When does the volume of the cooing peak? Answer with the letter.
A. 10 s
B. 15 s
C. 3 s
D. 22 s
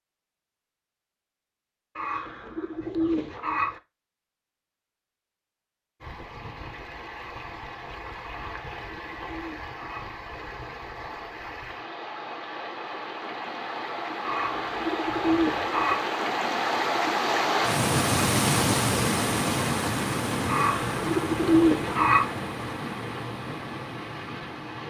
D.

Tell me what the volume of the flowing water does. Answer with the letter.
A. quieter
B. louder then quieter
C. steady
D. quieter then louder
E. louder
B.